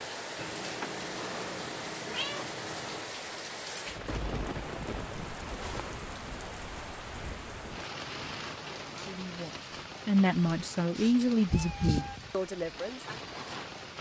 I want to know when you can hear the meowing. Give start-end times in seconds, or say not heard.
0.3-3.0, 5.2-6.0, 11.5-12.2.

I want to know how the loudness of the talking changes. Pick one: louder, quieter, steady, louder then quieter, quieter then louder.
louder then quieter.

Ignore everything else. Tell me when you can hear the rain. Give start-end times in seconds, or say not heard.
0.0-13.9.